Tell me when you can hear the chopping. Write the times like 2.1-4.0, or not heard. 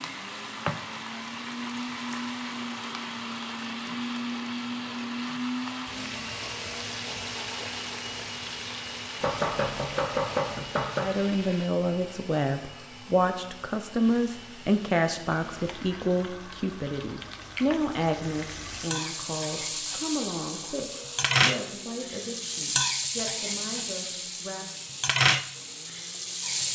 9.2-11.1.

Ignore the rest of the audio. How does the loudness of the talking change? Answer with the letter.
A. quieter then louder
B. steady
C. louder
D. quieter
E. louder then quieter
D.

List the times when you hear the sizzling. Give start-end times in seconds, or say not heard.
0.0-11.7, 14.0-26.7.